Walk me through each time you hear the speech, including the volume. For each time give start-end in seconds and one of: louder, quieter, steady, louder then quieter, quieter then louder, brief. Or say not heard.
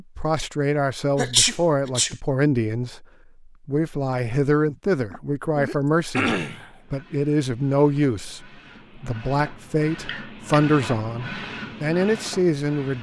0.0-12.9 steady.